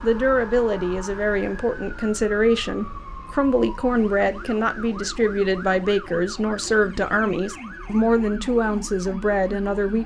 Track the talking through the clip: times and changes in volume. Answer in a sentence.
The talking can be heard from 0.0 to 10.0 s, at a steady volume.